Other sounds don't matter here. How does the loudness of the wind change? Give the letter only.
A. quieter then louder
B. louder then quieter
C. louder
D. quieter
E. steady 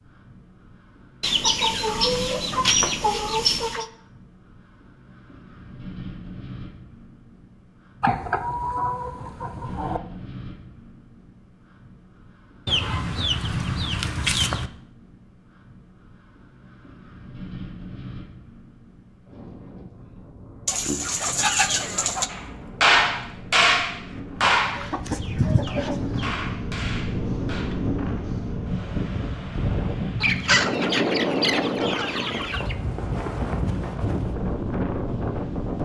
C.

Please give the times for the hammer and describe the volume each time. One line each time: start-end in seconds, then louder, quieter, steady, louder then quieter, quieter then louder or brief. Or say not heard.
22.3-27.9 quieter.